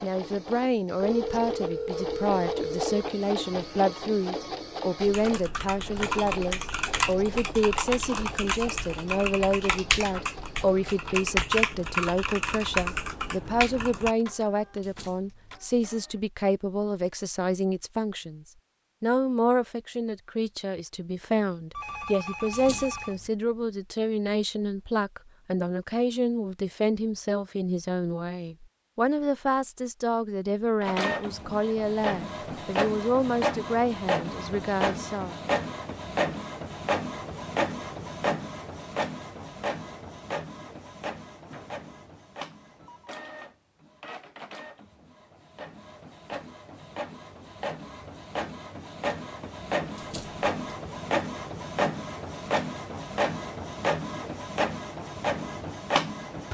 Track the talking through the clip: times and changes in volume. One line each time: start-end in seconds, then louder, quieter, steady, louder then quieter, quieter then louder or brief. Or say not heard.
0.0-35.4 steady.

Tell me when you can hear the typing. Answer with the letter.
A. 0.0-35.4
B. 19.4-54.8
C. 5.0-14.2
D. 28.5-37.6
C.